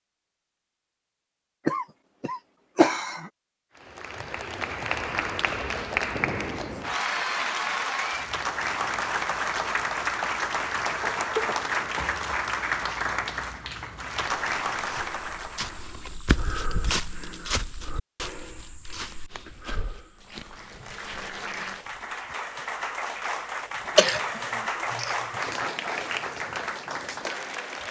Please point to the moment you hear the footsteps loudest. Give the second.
17 s.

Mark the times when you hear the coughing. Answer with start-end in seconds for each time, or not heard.
1.6-3.3, 11.0-11.7, 23.9-25.1.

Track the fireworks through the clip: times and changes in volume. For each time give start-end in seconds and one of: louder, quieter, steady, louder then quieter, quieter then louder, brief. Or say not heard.
not heard.